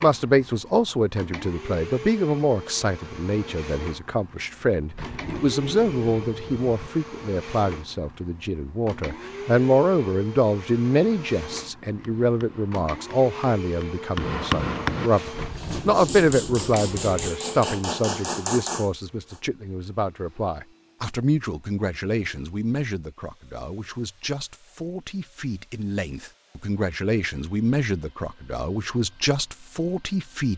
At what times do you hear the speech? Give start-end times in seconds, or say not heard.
0.0-30.5.